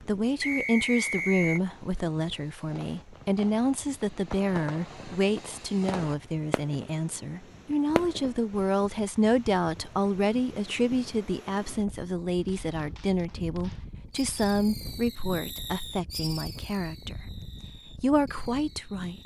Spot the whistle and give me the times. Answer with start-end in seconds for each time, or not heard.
0.4-1.6.